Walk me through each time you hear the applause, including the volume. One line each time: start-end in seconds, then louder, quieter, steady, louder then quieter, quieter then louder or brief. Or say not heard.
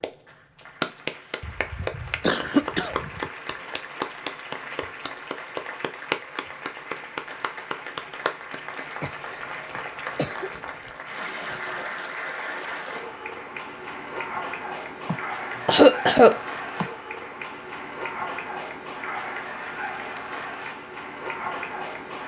0.0-22.2 steady.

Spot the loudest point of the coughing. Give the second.
16 s.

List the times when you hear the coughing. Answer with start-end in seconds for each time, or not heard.
1.4-3.3, 9.0-10.9, 15.1-16.9.